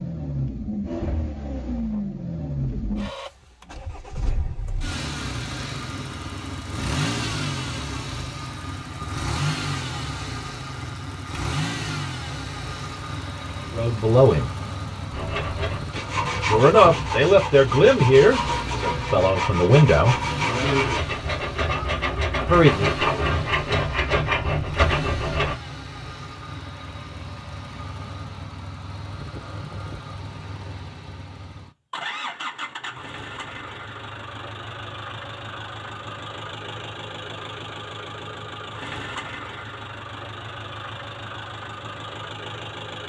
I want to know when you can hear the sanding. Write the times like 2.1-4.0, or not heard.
15.1-25.6.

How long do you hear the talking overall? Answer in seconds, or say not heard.
5 s.